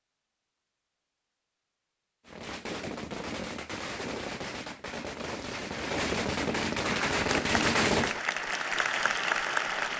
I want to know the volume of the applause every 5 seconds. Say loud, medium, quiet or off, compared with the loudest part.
off, loud.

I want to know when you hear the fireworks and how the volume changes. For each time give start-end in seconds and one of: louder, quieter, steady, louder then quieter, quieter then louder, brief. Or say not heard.
2.2-8.2 louder.